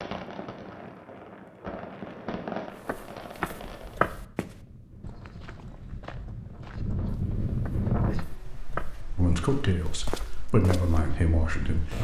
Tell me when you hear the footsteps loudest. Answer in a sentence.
The loudest moment of the footsteps is at 4 seconds.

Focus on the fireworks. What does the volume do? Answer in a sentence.
The loudness of the fireworks goes up, then down.